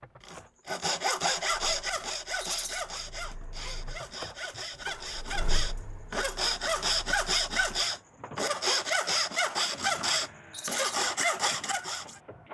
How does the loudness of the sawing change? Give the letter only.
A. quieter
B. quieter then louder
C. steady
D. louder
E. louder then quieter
B.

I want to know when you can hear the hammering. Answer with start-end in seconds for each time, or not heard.
not heard.